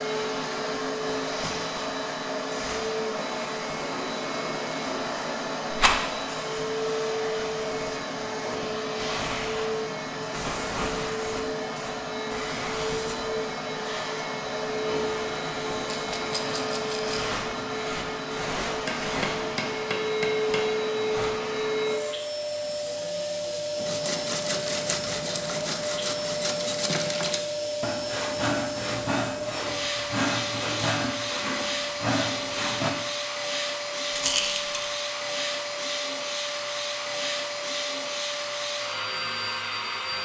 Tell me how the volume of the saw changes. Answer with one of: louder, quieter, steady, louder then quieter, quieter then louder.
steady.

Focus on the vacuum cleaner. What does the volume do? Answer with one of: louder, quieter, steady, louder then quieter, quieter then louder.
steady.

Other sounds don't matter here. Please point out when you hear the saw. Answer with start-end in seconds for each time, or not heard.
23.8-33.0.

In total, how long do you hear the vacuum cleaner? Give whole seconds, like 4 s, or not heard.
40 s.